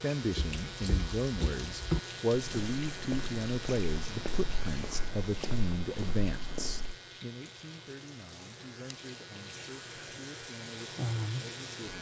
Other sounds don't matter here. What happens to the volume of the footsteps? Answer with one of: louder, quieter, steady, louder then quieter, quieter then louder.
louder then quieter.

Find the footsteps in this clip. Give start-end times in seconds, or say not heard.
0.2-7.0.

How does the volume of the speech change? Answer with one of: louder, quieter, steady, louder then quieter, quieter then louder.
quieter.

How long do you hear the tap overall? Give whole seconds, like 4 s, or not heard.
12 s.